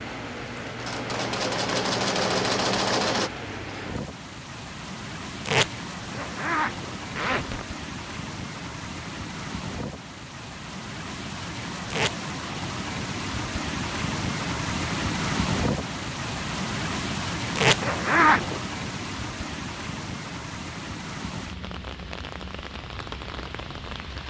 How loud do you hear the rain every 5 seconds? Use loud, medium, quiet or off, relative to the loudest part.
medium, medium, loud, loud, medium.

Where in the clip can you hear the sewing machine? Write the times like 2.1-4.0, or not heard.
0.1-3.3.